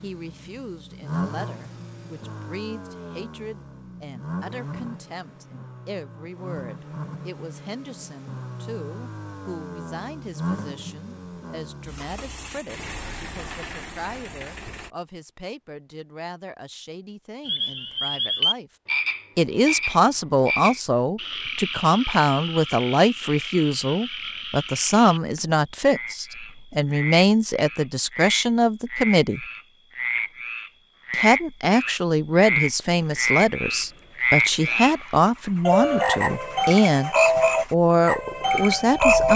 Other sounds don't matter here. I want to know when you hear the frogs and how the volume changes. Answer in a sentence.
The frogs can be heard from 17.4 to 39.3 s, getting quieter then louder.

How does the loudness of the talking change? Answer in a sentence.
The loudness of the talking goes up.